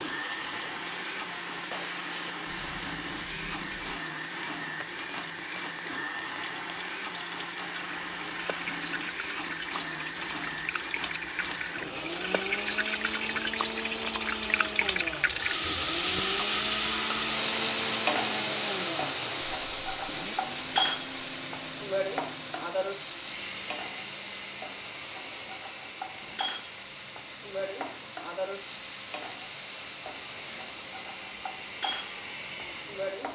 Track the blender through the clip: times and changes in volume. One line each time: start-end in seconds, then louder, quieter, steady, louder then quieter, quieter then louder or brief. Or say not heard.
0.0-33.2 quieter.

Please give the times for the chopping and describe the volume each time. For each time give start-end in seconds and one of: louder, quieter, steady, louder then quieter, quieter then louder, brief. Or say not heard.
not heard.